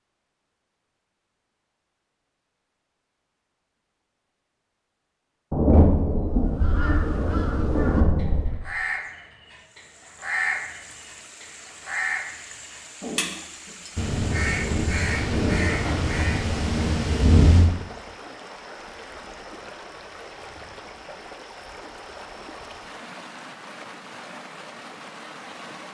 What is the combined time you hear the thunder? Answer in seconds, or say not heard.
7 s.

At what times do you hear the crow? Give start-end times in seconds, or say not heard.
6.5-16.4.